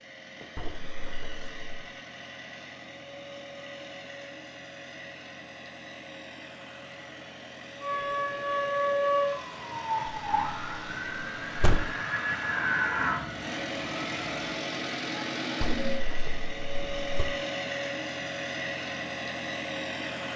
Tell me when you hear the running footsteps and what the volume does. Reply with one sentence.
The running footsteps can't be heard in this clip.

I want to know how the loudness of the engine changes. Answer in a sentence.
The volume of the engine goes up.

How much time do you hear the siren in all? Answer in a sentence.
You can hear the siren for 7 seconds altogether.